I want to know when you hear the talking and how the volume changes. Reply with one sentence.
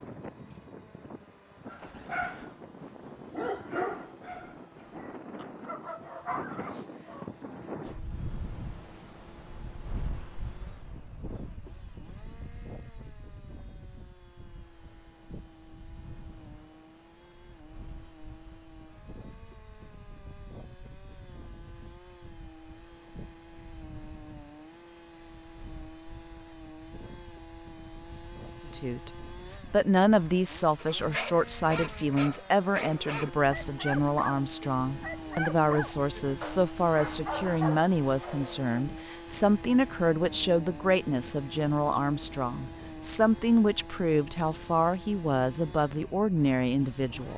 The talking can be heard from 28.6 to 47.3 s, at a steady volume.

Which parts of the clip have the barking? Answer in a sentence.
The barking can be heard from 1.6 to 7.3 s and from 30.8 to 38.9 s.